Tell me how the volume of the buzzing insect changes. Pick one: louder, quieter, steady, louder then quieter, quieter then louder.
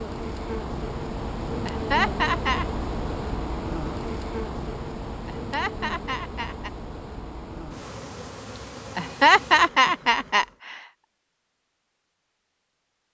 quieter.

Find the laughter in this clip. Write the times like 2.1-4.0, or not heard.
1.6-2.6, 5.2-6.7, 8.9-10.8.